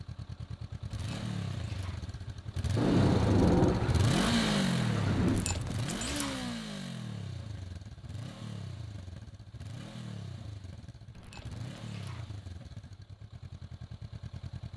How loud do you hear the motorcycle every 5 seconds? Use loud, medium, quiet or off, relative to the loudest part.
loud, medium, quiet.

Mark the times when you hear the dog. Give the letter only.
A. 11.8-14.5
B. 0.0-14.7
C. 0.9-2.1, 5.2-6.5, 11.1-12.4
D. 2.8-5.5
C.